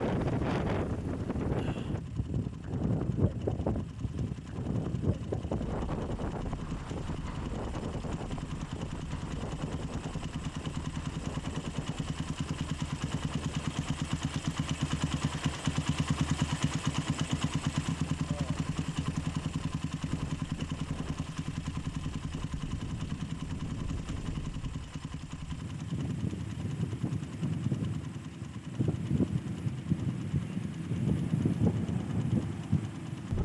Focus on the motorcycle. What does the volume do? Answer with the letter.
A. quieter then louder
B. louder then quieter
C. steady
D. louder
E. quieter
B.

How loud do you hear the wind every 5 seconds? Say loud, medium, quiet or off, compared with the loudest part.
loud, medium, quiet, quiet, quiet, loud, loud.